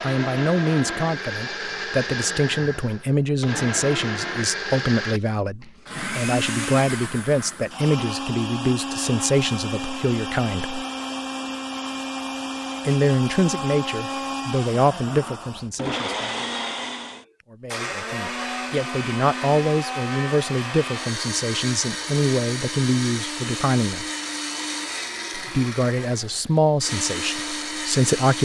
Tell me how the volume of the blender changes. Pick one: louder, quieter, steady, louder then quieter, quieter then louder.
steady.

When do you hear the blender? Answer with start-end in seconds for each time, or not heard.
0.0-28.3.